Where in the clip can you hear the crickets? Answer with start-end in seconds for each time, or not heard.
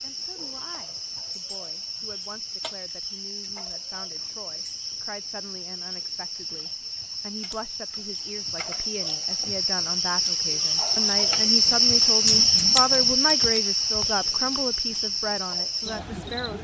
0.0-16.5.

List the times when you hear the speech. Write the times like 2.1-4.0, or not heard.
0.0-16.5.